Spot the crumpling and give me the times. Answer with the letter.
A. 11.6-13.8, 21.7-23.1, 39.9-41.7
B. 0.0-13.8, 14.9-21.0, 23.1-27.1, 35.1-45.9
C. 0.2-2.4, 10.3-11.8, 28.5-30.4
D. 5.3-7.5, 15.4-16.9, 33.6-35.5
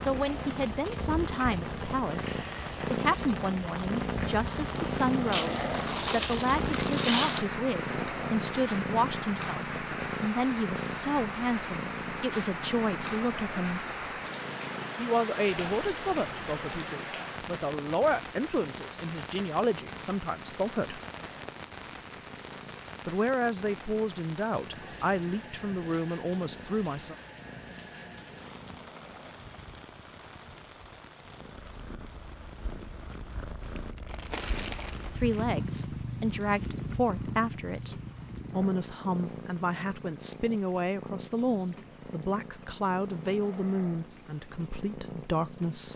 D.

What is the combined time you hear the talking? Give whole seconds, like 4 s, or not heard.
35 s.